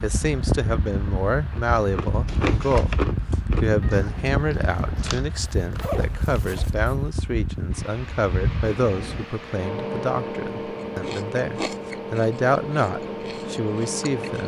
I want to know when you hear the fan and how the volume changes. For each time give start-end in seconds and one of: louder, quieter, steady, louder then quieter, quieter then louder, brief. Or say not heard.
0.0-14.4 steady.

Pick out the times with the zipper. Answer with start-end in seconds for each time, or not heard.
5.3-7.0.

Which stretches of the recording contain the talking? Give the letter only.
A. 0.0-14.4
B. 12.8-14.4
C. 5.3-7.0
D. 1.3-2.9
A.